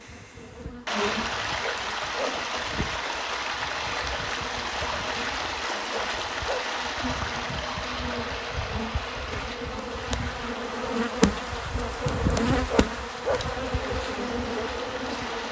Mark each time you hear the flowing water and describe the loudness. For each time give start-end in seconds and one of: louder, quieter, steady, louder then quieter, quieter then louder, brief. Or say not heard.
0.0-15.4 quieter.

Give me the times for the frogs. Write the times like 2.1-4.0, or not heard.
not heard.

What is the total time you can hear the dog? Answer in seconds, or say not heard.
2 s.